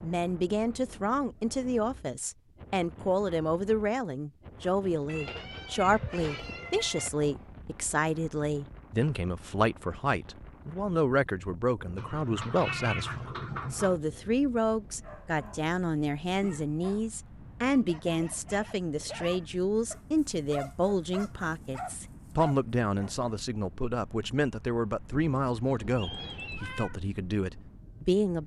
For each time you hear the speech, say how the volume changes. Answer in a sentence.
You can hear the speech from 0.0 to 28.4 s, at a steady volume.